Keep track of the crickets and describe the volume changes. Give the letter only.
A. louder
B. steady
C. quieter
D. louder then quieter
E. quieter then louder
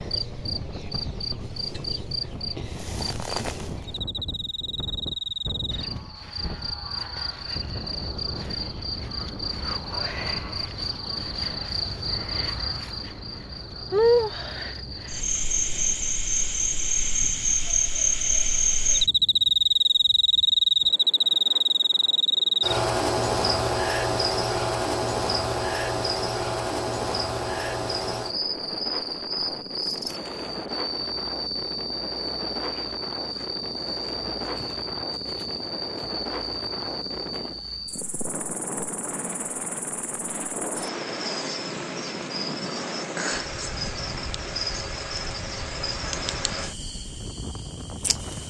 D.